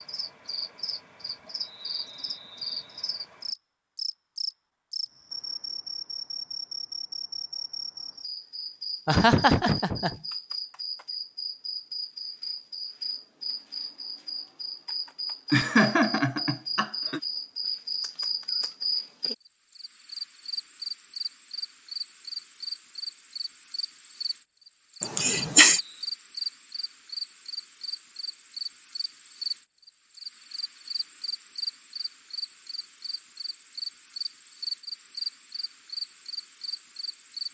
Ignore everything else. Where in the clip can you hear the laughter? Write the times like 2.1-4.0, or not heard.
9.1-10.2, 15.5-17.2, 25.0-25.8.